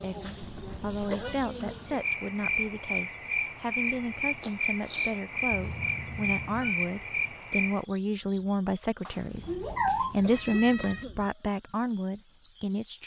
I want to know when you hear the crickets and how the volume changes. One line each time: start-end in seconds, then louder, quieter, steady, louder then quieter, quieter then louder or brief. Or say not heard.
0.0-13.0 steady.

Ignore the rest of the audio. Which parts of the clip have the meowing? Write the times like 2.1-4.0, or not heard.
0.4-1.4, 5.5-6.8, 9.1-11.1.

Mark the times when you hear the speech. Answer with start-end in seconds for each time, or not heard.
0.0-13.0.